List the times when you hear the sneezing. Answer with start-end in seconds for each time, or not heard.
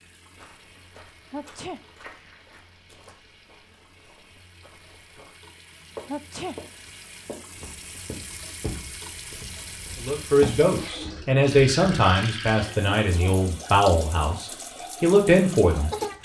1.3-1.8, 6.0-6.6, 12.9-13.3.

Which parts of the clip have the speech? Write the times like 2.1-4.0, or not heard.
10.0-16.2.